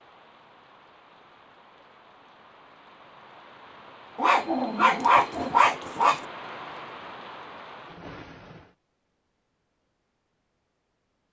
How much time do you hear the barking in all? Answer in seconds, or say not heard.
2 s.